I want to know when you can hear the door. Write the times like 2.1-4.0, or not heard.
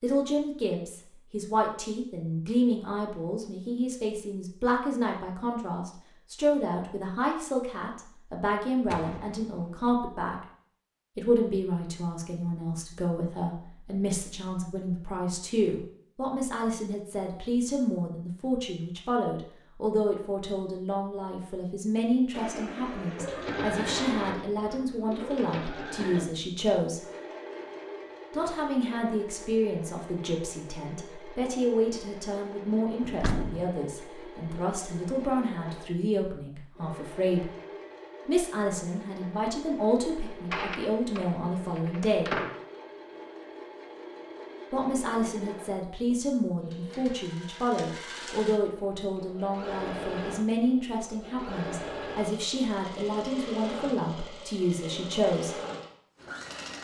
8.9-9.8, 33.0-33.6, 40.2-42.6.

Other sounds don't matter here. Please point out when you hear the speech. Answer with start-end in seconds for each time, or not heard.
0.0-10.4, 11.2-27.0, 28.3-37.5, 38.2-42.4, 44.7-55.5.